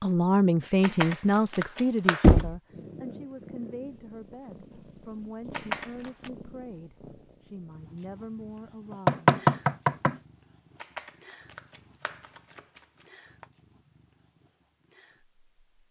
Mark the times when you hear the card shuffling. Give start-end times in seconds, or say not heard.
0.8-2.5, 5.5-6.3, 10.8-13.4.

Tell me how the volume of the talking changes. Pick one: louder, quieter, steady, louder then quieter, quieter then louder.
quieter.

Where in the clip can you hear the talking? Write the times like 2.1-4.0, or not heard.
0.0-9.2.